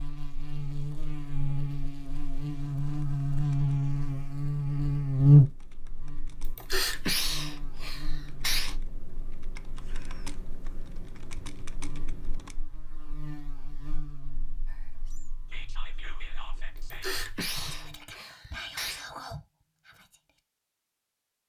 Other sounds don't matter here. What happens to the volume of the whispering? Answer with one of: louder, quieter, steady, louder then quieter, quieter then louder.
louder.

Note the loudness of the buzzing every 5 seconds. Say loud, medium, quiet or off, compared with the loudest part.
medium, loud, quiet, quiet, off.